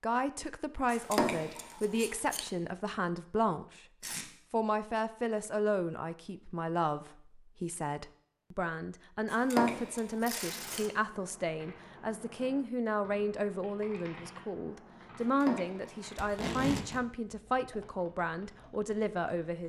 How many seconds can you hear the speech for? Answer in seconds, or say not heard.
19 s.